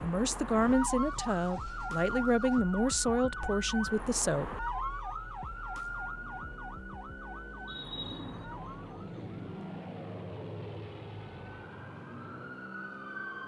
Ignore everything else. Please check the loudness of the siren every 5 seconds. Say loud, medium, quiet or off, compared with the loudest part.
loud, medium, medium.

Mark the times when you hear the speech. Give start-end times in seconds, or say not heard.
0.0-4.5.